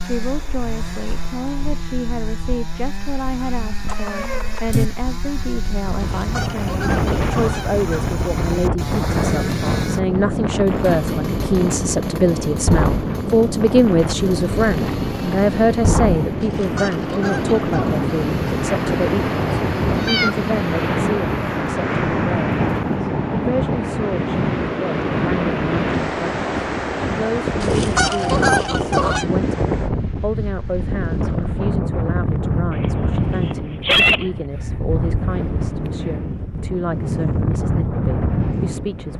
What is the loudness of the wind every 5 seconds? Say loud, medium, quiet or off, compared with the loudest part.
quiet, loud, loud, loud, loud, loud, loud, loud.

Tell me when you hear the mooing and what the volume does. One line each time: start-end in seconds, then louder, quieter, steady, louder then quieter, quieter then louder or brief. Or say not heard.
not heard.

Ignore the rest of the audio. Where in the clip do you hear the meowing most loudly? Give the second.
34 s.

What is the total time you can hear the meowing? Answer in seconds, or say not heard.
3 s.